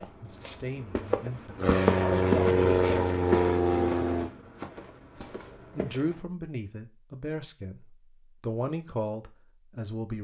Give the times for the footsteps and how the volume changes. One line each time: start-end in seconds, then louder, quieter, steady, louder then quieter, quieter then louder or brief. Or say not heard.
0.0-6.2 louder then quieter.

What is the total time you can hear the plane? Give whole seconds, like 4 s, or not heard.
3 s.